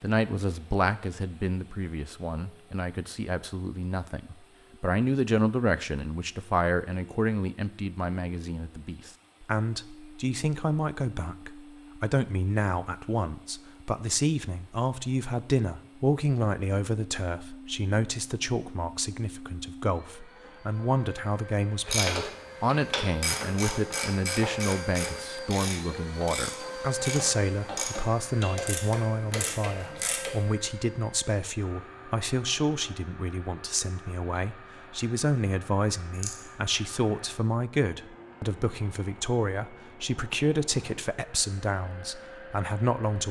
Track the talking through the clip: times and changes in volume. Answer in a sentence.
The talking can be heard from 0.0 to 43.2 s, at a steady volume.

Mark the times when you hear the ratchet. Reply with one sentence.
The ratchet can be heard from 21.9 to 30.4 s.